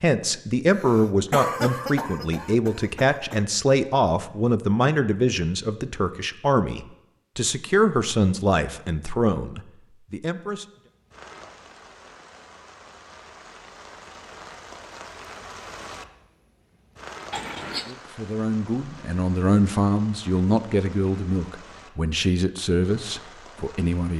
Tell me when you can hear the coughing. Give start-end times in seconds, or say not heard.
0.7-3.4, 17.3-17.9.